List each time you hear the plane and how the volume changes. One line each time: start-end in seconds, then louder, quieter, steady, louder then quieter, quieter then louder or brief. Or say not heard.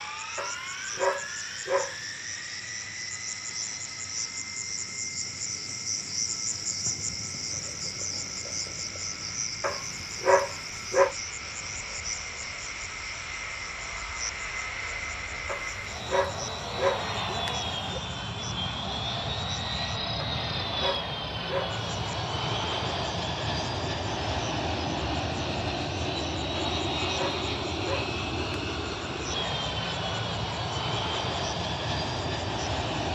0.0-33.1 louder.